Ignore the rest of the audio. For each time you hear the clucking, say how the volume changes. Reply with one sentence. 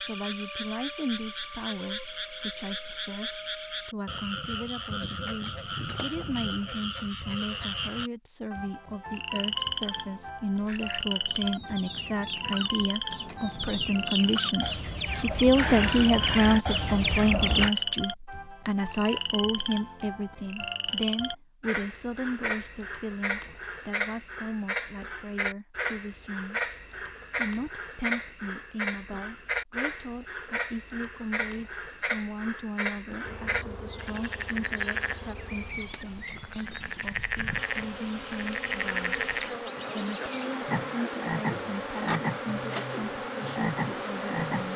The clucking can be heard from 10.6 to 17.7 s, getting louder.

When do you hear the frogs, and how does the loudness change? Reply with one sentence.
You can hear the frogs from 0.0 to 44.7 s, at a steady volume.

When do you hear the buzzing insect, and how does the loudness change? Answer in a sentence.
The buzzing insect can be heard from 33.2 to 44.7 s, getting louder.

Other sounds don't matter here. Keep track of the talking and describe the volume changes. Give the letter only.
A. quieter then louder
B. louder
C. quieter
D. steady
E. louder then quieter
E.